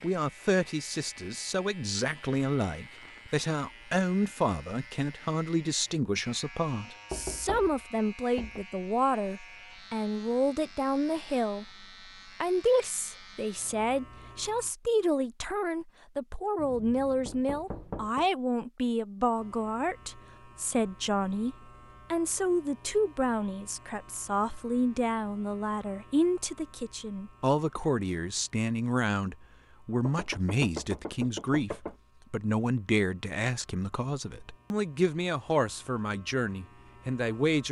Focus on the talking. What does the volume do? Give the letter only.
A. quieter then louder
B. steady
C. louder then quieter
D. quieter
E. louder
B.